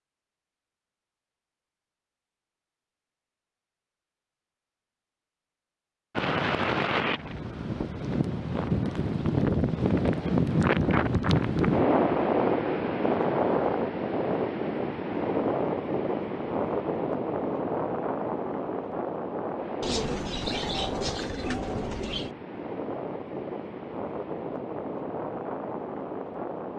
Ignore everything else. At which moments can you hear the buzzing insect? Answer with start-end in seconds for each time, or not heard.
not heard.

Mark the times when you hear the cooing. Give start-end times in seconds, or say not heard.
19.8-22.3.